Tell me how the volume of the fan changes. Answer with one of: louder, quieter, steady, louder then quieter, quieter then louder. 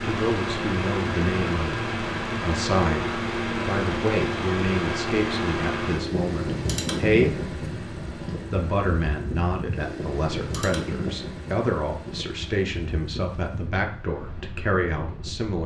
quieter.